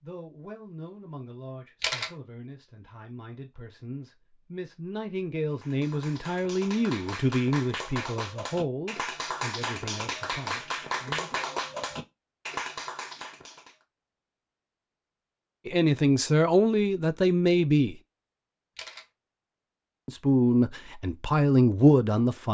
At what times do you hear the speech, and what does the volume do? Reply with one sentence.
The speech can be heard from 0.0 to 11.3 s, getting louder then quieter; briefly from 15.7 to 17.9 s; and briefly from 20.1 to 22.4 s.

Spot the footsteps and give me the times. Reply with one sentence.
The footsteps can't be heard in this clip.